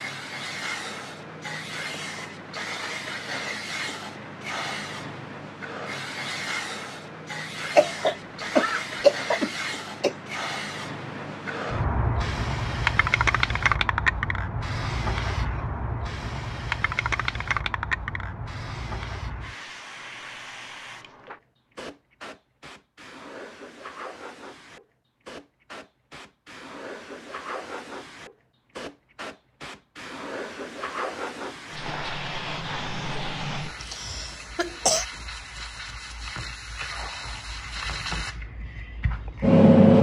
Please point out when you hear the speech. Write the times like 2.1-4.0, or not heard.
not heard.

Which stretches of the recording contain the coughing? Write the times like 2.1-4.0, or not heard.
7.6-10.2, 33.8-35.0.